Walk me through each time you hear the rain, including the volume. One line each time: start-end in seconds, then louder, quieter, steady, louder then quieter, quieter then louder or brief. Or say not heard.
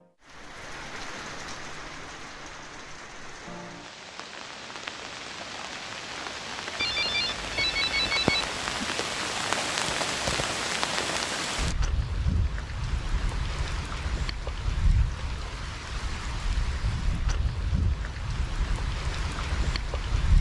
0.2-20.3 louder then quieter.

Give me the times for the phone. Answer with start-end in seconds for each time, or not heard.
6.8-8.9.